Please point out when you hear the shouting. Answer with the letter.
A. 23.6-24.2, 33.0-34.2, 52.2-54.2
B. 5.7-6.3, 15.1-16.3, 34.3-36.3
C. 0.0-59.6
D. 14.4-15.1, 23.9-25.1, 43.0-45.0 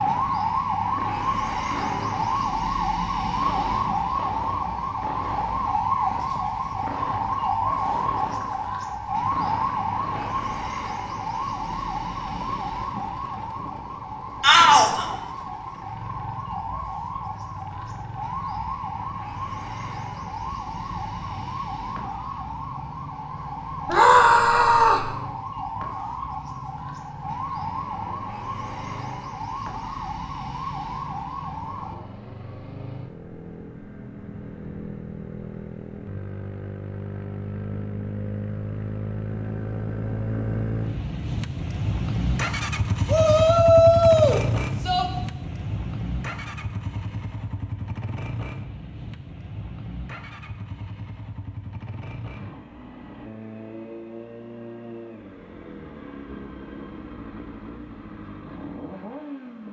D.